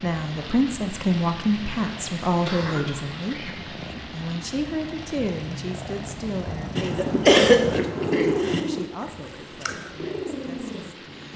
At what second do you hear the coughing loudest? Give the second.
7 s.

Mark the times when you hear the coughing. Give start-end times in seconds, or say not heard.
2.5-3.5, 6.8-8.6.